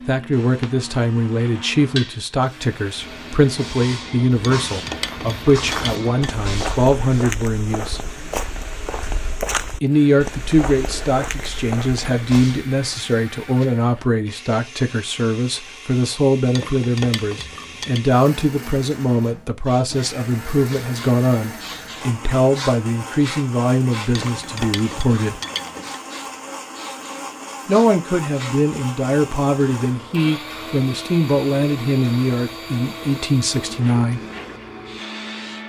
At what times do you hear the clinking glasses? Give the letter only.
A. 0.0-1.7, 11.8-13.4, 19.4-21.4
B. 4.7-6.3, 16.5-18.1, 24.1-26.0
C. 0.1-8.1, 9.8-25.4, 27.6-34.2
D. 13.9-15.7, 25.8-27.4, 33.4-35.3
B.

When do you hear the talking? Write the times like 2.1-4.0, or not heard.
0.1-8.1, 9.8-25.4, 27.6-34.2.